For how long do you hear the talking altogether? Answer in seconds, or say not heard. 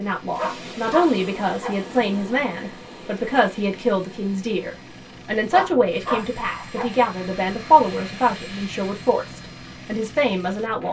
11 s.